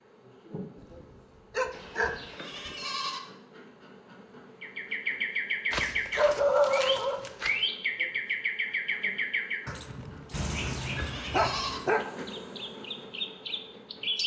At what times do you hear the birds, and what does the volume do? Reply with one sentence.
You can hear the birds from 4.6 to 14.2 s, getting quieter.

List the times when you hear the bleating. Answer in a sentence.
The bleating can be heard from 1.7 to 3.2 s and from 10.3 to 11.8 s.